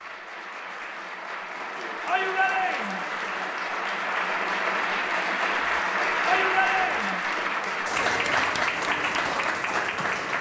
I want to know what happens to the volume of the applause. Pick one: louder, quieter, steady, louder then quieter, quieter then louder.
louder.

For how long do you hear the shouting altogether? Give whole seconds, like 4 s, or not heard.
2 s.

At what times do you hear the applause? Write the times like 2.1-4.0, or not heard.
0.0-10.3.